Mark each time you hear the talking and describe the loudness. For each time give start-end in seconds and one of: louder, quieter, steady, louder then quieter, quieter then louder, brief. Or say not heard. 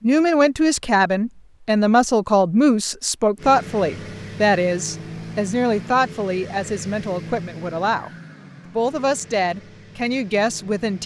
0.0-8.1 quieter
8.7-11.0 brief.